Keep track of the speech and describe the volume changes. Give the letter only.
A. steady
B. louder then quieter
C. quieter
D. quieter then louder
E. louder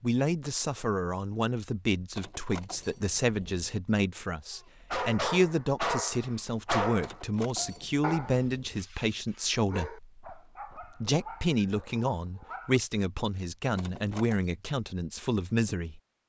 A.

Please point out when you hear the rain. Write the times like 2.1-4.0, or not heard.
not heard.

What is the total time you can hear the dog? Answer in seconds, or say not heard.
8 s.